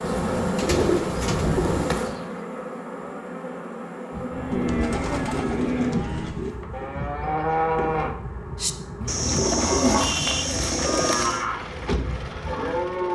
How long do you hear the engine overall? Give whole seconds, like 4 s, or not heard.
2 s.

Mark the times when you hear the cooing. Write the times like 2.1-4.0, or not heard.
0.2-2.4, 4.5-6.5, 9.1-11.4.